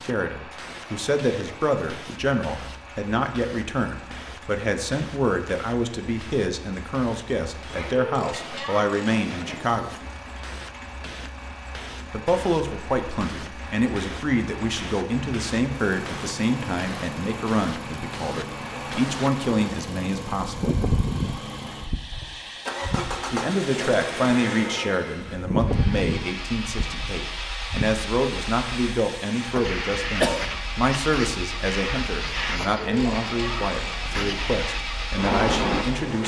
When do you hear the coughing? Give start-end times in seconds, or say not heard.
29.1-30.4.